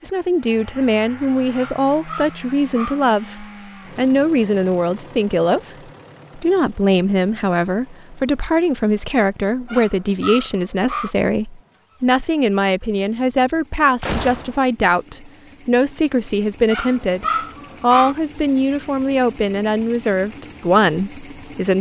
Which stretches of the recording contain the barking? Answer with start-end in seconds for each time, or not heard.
1.5-3.0, 9.7-11.2, 16.7-18.1.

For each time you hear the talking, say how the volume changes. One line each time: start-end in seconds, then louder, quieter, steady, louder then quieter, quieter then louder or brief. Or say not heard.
0.0-5.8 steady
6.3-21.7 steady.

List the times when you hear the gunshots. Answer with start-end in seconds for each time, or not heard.
14.0-14.6.